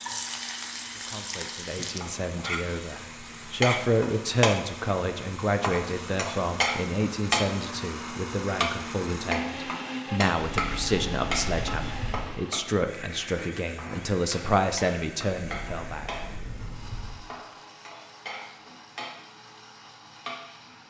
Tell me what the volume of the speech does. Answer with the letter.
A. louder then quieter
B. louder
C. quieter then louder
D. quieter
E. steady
E.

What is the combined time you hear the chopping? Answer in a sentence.
You can't hear the chopping here.